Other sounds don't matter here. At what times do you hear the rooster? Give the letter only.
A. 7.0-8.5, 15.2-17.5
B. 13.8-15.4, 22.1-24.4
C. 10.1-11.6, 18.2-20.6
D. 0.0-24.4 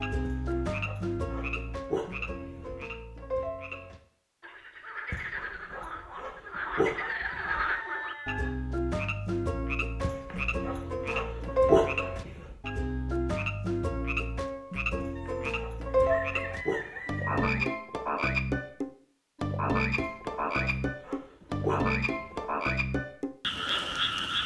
A.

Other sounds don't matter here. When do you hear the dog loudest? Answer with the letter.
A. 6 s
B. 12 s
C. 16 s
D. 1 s
B.